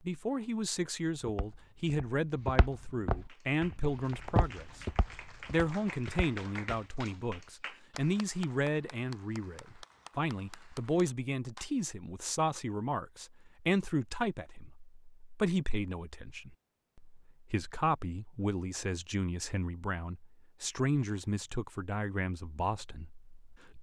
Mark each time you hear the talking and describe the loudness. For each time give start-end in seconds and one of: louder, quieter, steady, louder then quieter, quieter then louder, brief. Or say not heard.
0.0-23.7 steady.